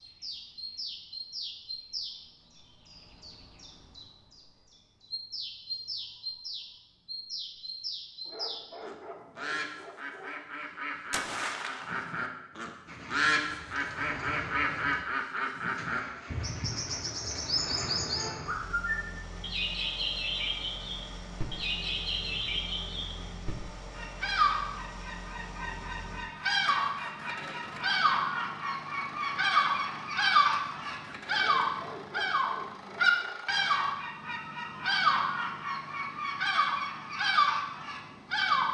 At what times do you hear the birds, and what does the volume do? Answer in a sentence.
The birds can be heard from 0.0 to 38.6 s, getting louder.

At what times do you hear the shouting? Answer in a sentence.
You can't hear the shouting here.